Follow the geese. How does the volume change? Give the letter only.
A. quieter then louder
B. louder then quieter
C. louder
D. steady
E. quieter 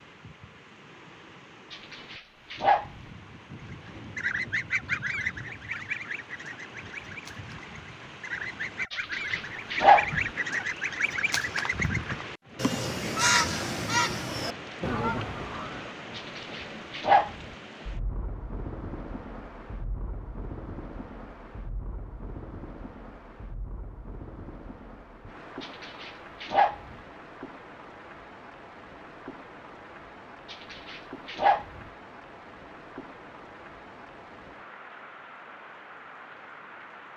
A.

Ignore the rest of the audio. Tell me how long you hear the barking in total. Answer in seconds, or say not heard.
7 s.